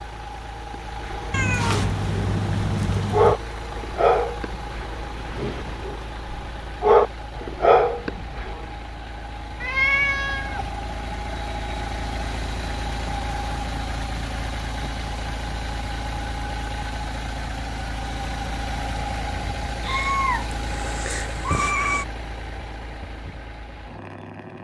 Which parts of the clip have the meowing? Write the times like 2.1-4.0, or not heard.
1.3-3.4, 9.6-10.8, 19.8-22.1.